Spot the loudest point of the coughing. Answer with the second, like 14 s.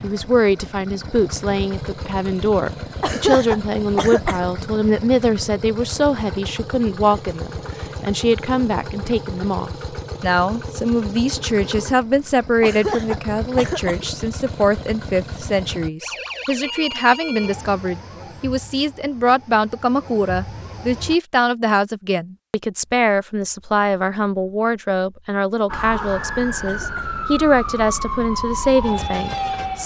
3 s.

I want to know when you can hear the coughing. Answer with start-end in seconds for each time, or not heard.
3.0-4.5, 12.6-14.1, 25.7-27.1.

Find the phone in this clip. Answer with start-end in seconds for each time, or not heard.
not heard.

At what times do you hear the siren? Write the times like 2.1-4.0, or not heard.
16.0-21.1, 25.6-29.8.